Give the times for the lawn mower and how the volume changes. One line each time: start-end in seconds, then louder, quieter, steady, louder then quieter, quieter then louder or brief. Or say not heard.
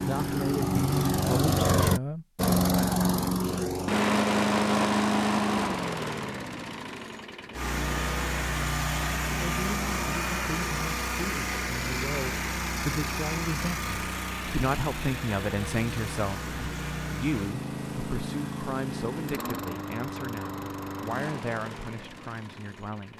0.0-23.1 quieter.